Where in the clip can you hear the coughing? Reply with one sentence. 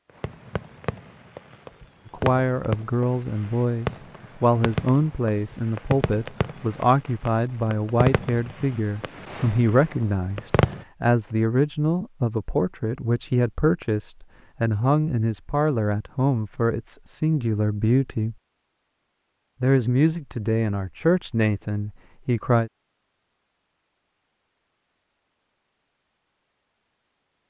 You can't hear the coughing here.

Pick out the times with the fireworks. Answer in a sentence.
You can hear the fireworks from 0.1 to 10.8 s.